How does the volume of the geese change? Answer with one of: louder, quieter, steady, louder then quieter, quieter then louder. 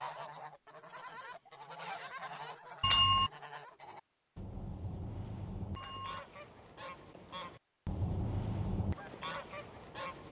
louder.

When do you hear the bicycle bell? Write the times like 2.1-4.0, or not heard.
2.8-3.3, 5.8-6.2.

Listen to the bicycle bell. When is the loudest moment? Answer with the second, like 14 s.
3 s.